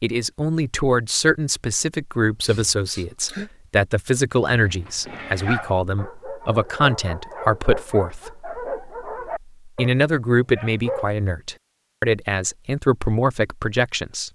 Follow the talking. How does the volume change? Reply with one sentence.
The volume of the talking stays about the same.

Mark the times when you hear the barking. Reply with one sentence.
You can hear the barking from 4.5 to 11.1 s.